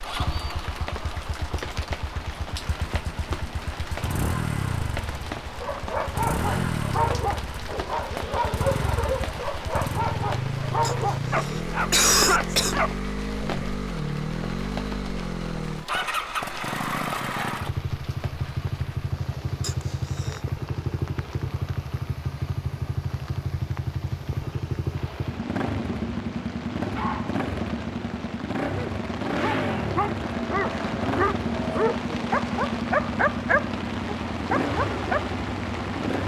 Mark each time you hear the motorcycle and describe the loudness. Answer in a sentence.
The motorcycle can be heard from 0.0 to 36.2 s, at a steady volume.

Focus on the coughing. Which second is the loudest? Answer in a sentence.
The volume of the coughing peaks at 12 seconds.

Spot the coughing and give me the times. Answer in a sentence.
You can hear the coughing from 10.8 to 12.8 s and from 19.6 to 20.5 s.